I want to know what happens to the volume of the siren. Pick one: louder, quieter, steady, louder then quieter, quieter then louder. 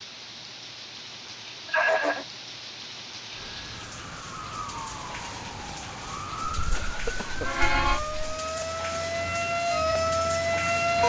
louder.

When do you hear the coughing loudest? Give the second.
2 s.